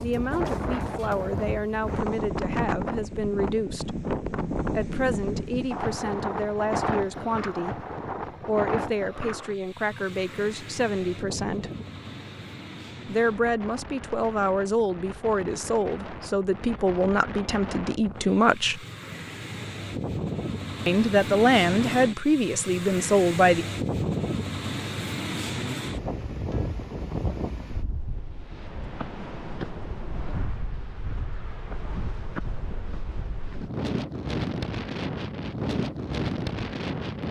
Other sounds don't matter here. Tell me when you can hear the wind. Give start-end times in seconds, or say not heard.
0.0-37.2.